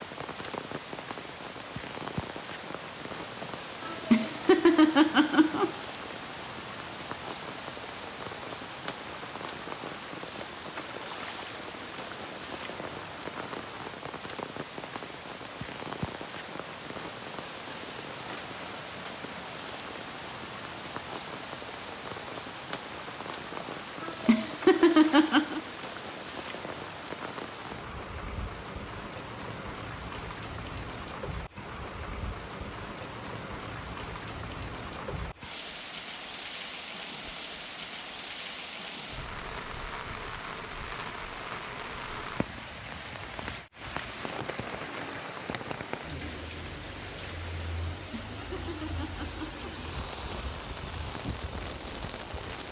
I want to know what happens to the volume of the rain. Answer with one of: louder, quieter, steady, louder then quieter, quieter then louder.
steady.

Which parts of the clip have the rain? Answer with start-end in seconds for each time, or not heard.
0.0-52.6.